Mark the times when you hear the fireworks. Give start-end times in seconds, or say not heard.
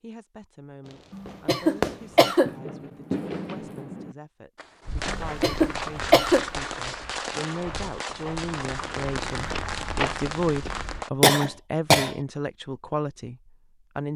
0.8-11.1.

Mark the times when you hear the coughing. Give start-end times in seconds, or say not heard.
1.1-2.5, 5.0-6.5, 11.2-12.2.